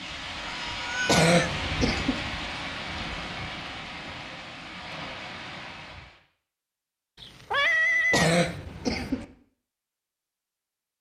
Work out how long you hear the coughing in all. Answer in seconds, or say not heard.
2 s.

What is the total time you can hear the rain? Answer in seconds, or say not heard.
6 s.